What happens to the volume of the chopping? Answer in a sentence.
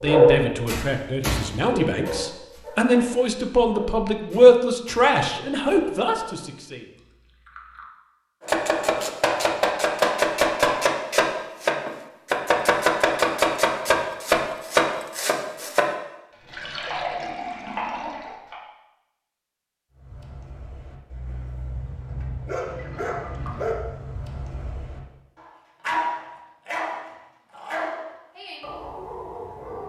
The loudness of the chopping goes down.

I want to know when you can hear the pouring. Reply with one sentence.
The pouring can be heard from 7.0 to 7.8 s, from 16.5 to 18.4 s and from 22.6 to 23.7 s.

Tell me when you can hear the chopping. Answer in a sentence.
The chopping can be heard from 8.4 to 18.6 s.